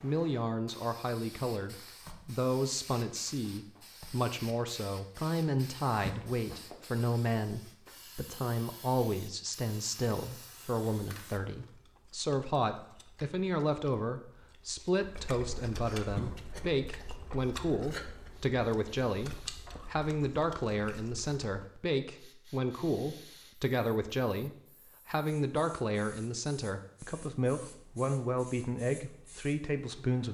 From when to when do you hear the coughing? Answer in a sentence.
The coughing can be heard from 6.0 to 6.6 s and from 16.1 to 16.7 s.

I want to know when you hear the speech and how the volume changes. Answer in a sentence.
You can hear the speech from 0.0 to 30.2 s, at a steady volume.